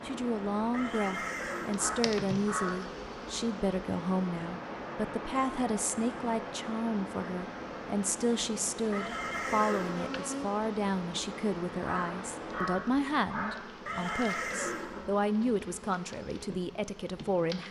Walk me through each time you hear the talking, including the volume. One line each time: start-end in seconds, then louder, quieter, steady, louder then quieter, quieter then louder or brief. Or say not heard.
0.1-17.6 steady.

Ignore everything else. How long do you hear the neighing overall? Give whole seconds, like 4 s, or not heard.
4 s.